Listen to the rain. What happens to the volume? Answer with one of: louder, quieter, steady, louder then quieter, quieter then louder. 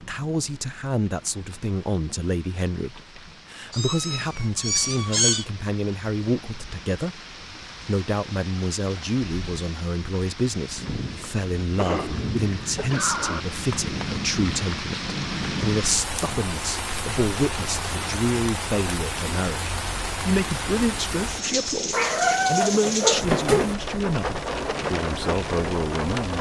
louder.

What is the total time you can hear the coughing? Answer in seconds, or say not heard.
2 s.